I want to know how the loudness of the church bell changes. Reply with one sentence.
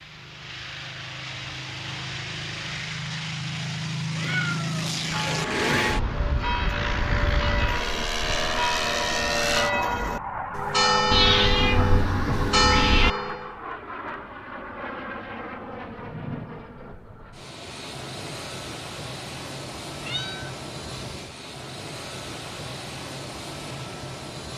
The loudness of the church bell goes up.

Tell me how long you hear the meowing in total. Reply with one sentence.
You can hear the meowing for 4 seconds altogether.